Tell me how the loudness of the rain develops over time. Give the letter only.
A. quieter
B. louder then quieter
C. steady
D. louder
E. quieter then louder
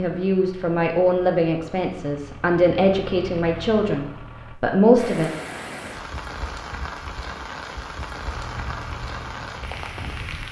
C.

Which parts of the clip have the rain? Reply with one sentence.
The rain can be heard from 5.0 to 10.4 s.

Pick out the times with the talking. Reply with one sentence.
The talking can be heard from 0.0 to 5.3 s.